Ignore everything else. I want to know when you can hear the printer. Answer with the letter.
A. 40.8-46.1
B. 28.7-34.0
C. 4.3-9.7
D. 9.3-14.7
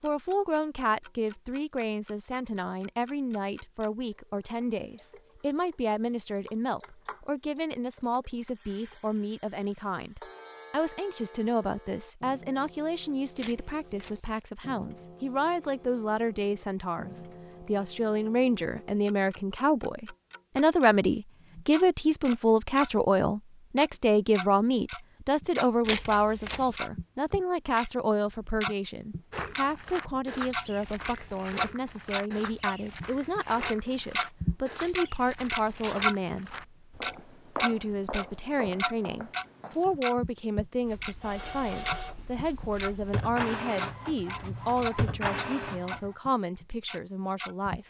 A.